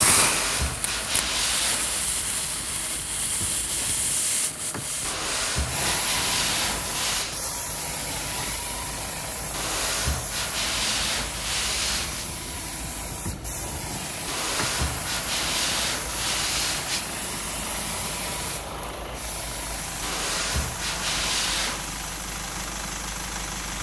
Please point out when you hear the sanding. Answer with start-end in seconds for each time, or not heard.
0.1-2.0, 5.0-7.4, 9.5-12.3, 14.2-17.1, 20.0-21.9.